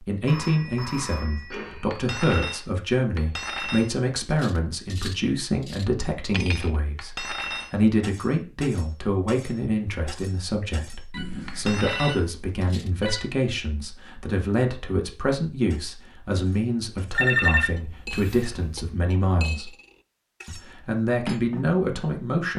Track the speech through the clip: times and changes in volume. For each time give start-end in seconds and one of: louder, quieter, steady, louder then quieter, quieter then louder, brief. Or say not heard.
0.1-19.7 steady
20.4-22.5 brief.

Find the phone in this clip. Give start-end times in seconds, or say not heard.
0.2-2.0, 11.1-13.3, 17.1-18.9.